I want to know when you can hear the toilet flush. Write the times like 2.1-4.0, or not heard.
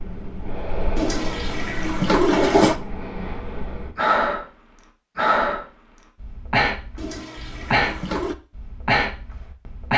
0.9-2.8, 7.0-8.3.